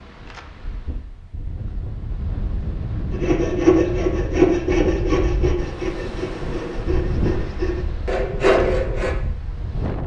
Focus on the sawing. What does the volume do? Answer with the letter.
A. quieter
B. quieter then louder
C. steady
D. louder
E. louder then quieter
B.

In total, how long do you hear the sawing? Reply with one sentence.
The sawing can be heard for 6 seconds in total.